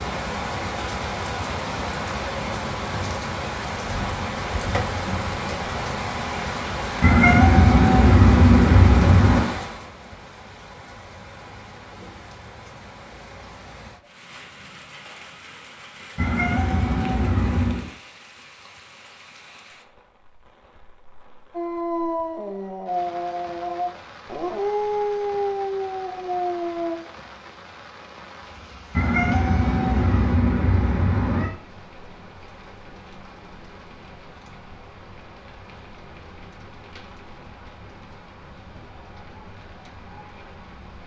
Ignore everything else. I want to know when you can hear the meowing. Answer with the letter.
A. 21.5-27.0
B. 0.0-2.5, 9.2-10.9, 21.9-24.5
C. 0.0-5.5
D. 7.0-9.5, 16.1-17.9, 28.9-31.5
D.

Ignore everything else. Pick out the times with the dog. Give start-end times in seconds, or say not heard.
21.5-27.0.